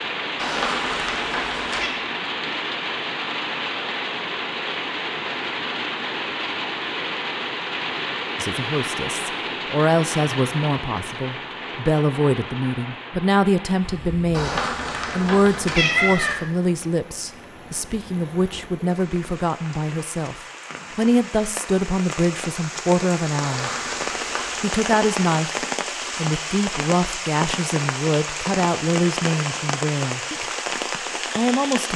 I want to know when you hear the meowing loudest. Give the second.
16 s.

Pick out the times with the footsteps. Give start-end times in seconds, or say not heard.
not heard.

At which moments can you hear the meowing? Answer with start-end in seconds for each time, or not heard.
0.3-1.9, 14.3-16.4, 23.4-24.6.